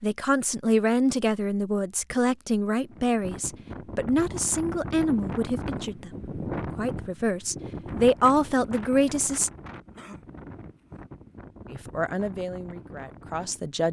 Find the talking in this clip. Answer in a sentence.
You can hear the talking from 0.0 to 9.5 s and from 11.7 to 13.8 s.